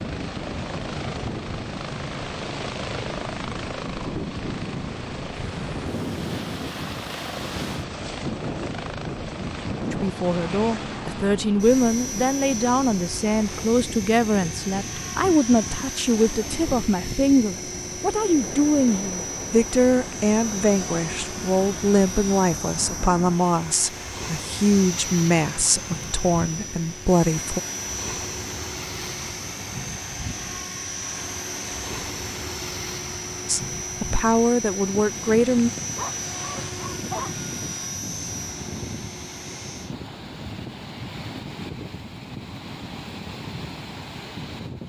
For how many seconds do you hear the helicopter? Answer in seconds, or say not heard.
40 s.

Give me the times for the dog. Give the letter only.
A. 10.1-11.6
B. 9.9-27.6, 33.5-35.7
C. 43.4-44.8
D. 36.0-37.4
D.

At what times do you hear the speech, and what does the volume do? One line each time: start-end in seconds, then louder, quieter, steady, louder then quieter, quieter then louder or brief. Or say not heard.
9.9-27.6 steady
33.5-35.7 brief.